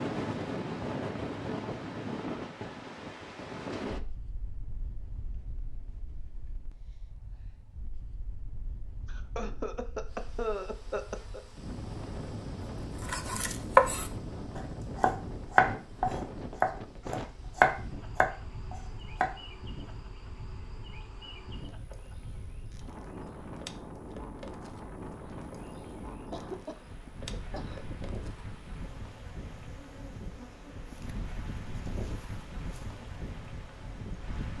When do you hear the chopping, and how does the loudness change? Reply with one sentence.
You can hear the chopping from 13.0 to 19.3 s, getting quieter.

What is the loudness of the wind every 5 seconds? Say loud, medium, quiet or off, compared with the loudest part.
loud, quiet, medium, medium, medium, medium, medium.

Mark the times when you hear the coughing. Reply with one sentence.
You can hear the coughing from 9.1 to 11.4 s and from 26.3 to 27.9 s.